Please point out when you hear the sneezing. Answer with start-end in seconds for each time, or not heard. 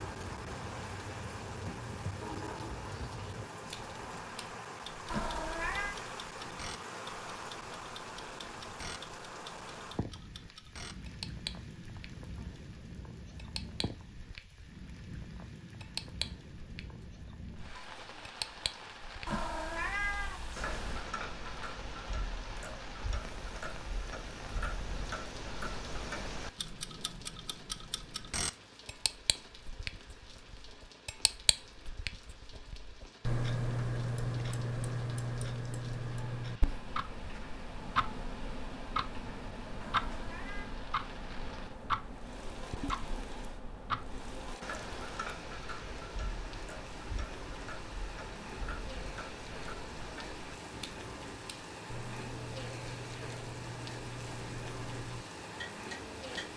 not heard.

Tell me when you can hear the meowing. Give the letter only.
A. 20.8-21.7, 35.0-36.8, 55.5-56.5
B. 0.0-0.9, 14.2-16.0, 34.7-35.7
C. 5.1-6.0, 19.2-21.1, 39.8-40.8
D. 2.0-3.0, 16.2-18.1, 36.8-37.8
C.